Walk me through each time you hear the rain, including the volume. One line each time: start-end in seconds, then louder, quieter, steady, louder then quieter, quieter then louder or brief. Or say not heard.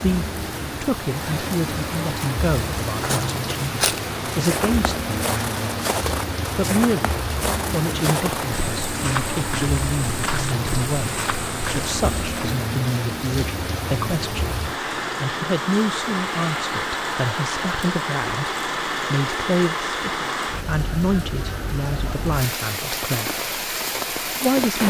0.0-24.8 steady.